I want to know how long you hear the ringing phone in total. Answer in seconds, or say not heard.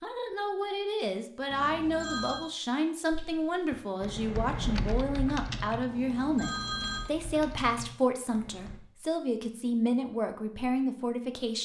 2 s.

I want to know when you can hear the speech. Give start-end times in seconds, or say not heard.
0.0-11.6.